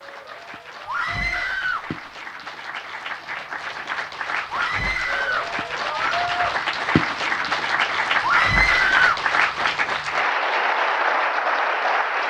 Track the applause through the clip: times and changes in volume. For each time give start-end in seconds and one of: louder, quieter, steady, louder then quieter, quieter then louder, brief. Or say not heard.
0.0-12.2 louder.